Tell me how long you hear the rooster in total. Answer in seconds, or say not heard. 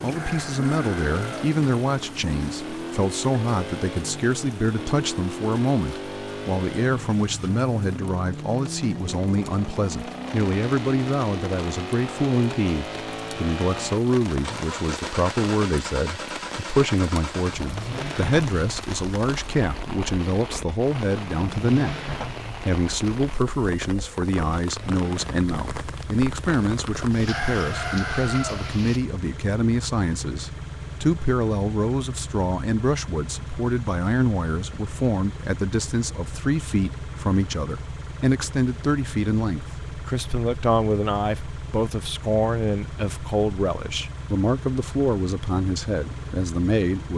3 s.